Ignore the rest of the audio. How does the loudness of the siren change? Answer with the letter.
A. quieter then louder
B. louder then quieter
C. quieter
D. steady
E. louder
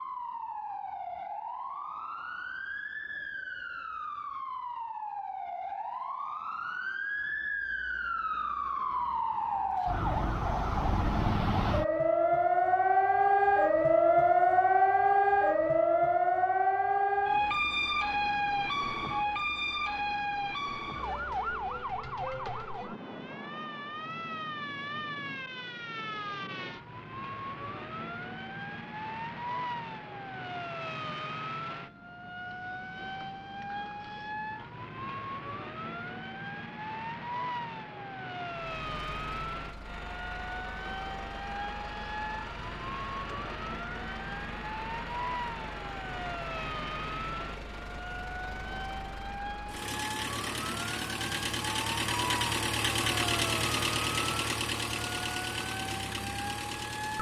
B.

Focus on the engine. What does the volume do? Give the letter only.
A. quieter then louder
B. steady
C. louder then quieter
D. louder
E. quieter
D.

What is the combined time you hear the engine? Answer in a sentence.
You can hear the engine for 18 seconds altogether.